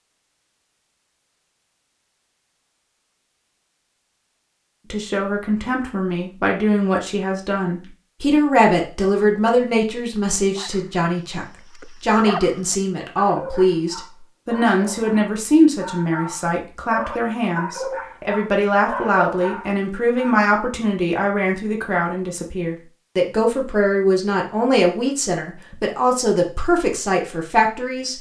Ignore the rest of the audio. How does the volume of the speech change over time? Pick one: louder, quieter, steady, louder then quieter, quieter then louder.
steady.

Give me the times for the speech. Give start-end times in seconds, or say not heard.
4.9-28.1.